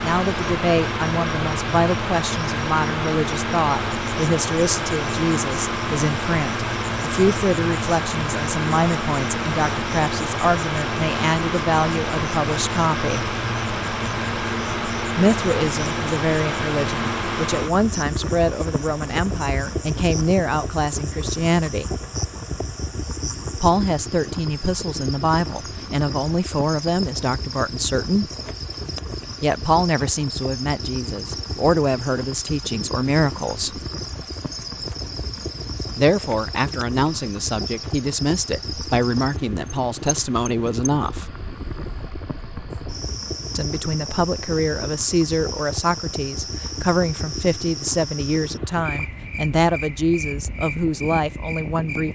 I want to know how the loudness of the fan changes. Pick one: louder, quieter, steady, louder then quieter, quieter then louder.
quieter.